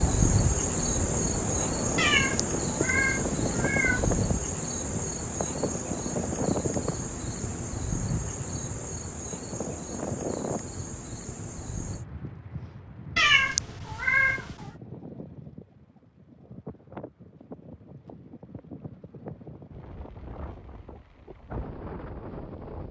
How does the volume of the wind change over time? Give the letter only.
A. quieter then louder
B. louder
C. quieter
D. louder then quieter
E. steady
C.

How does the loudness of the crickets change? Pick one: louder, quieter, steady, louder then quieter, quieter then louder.
quieter.